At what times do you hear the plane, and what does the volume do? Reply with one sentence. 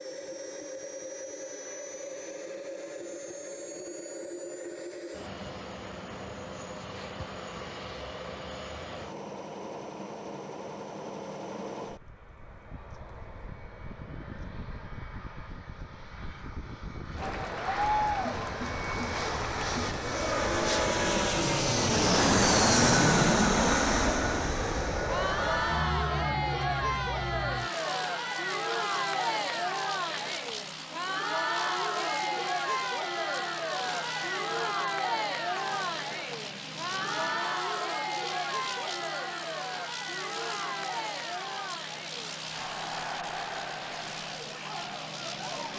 The plane can be heard from 0.0 to 45.7 s, getting louder then quieter.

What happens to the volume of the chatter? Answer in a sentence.
The loudness of the chatter goes down.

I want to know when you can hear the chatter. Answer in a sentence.
You can hear the chatter from 17.1 to 45.7 s.